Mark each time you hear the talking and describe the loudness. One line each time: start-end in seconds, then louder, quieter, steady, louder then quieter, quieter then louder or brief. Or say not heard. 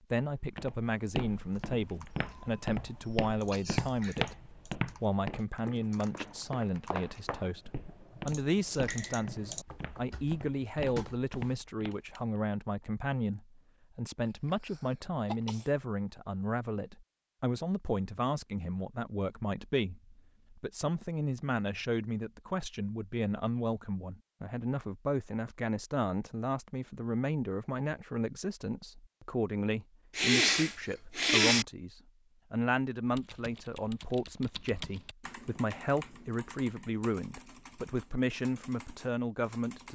0.1-39.8 steady.